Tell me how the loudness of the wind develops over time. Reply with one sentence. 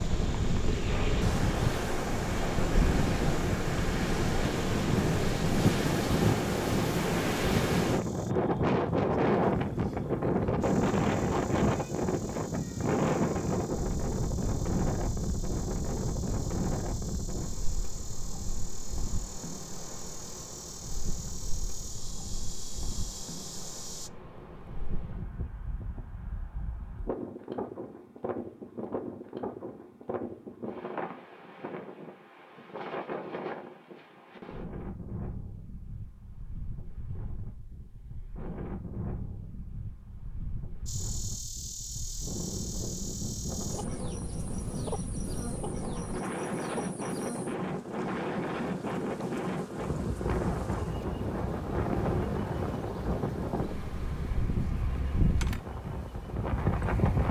The volume of the wind goes down, then up.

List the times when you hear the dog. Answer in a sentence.
The dog can't be heard in this clip.